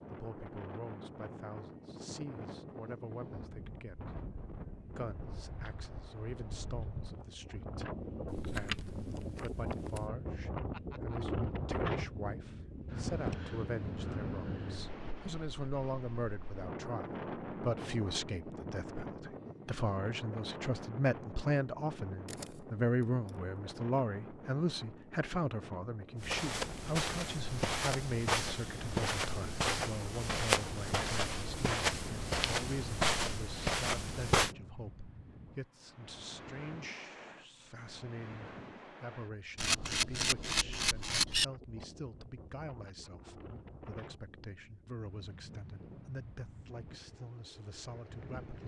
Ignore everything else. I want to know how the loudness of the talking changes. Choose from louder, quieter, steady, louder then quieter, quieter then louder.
louder then quieter.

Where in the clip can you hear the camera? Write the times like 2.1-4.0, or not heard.
8.2-10.0, 22.2-23.3, 39.5-41.5.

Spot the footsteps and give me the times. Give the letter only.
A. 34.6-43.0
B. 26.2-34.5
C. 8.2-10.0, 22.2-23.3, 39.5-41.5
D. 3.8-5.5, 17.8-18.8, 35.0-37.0
B.